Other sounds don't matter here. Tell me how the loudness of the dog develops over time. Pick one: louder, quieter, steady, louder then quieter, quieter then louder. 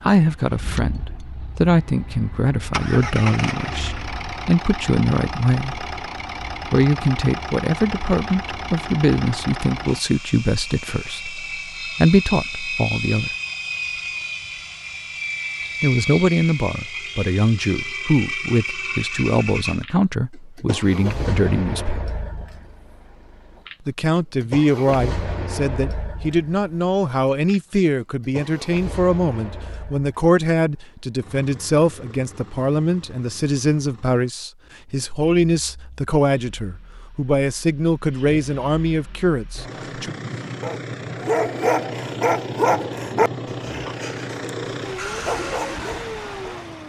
quieter then louder.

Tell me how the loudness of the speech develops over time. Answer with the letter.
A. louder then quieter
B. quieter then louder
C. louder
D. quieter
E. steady
E.